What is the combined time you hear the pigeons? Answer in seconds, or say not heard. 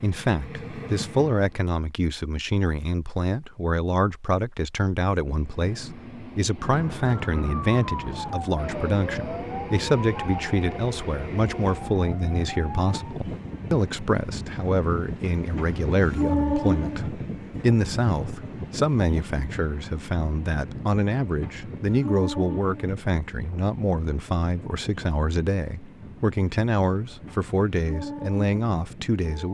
not heard.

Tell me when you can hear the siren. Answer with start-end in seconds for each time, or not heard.
6.6-13.2.